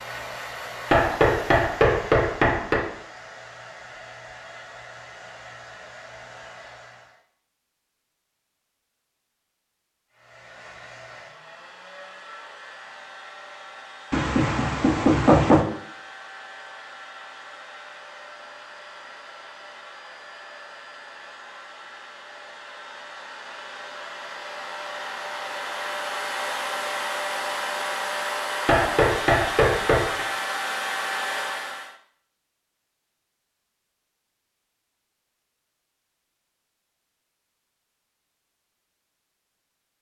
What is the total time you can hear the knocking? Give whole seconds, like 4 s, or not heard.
5 s.